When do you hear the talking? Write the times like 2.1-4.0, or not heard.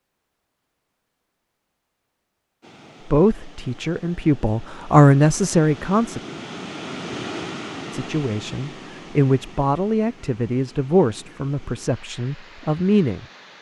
3.0-6.2, 7.9-13.2.